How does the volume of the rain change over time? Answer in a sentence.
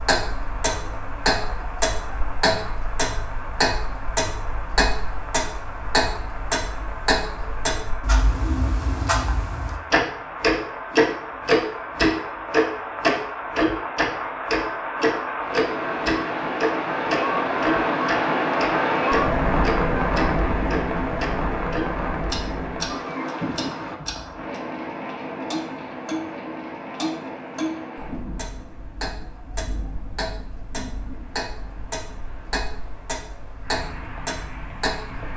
The volume of the rain goes up, then down.